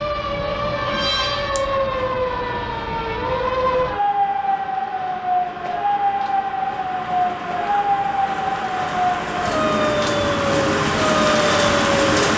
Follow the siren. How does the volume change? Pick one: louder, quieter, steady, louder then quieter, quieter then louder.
steady.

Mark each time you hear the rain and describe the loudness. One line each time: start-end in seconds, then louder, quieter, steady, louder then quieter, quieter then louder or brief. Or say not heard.
0.0-12.3 louder.